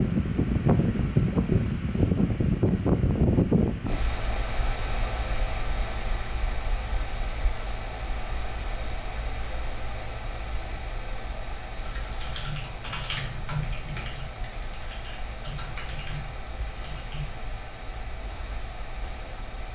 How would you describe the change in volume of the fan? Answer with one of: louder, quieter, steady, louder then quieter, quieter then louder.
quieter.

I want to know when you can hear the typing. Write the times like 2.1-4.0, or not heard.
11.8-17.4.